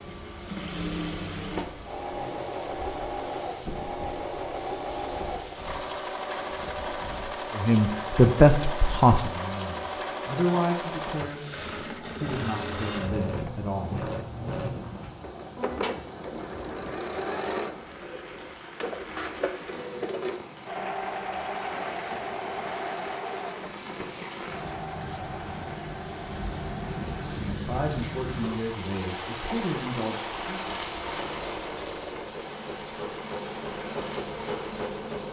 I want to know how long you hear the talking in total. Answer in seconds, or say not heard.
10 s.